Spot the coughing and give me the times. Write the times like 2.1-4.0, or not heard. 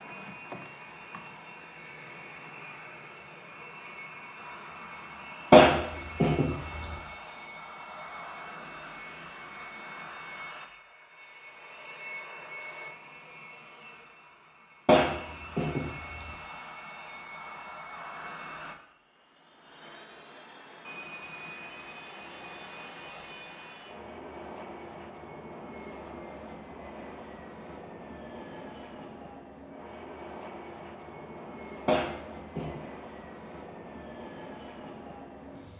5.5-6.9, 14.8-16.3, 31.9-32.8.